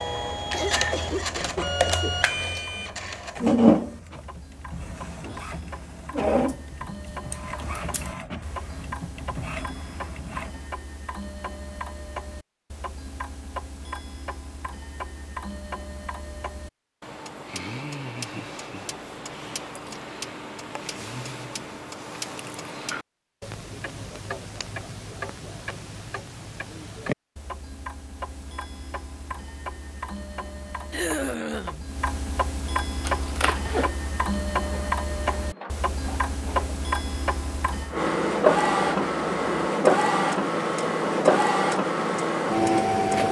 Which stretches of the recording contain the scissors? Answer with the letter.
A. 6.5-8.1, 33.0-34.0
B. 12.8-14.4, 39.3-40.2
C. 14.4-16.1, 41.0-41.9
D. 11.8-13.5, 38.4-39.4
A.